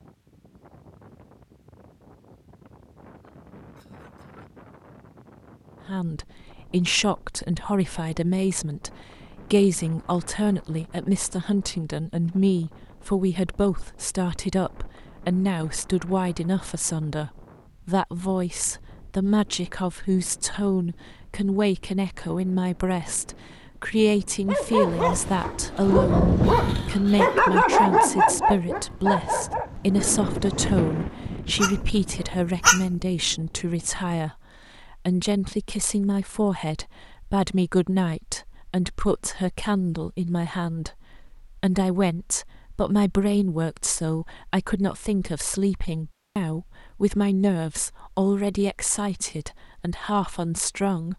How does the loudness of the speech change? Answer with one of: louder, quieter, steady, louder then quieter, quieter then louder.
steady.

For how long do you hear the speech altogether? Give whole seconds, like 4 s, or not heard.
45 s.